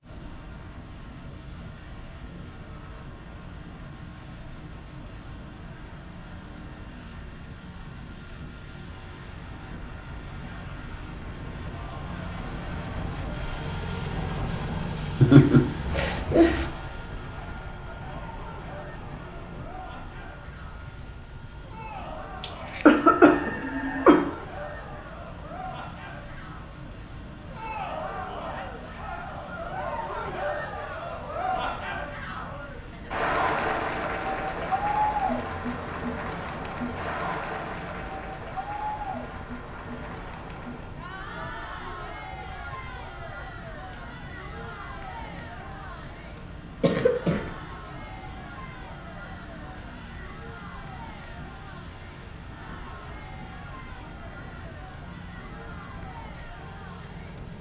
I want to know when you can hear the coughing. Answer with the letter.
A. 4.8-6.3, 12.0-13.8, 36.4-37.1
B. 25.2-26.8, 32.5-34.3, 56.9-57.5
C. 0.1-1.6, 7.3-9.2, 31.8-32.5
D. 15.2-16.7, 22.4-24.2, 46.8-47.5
D.